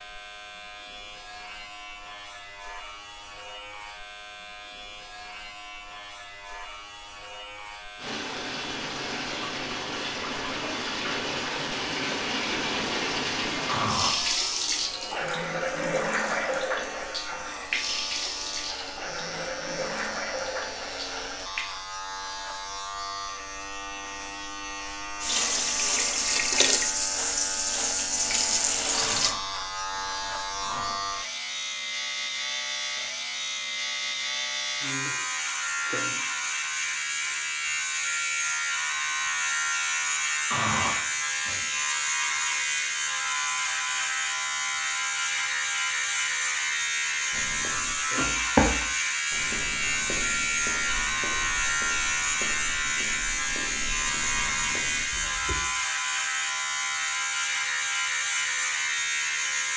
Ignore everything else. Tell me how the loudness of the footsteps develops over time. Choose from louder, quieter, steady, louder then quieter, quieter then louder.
quieter.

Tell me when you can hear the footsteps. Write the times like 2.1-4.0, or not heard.
47.3-55.5.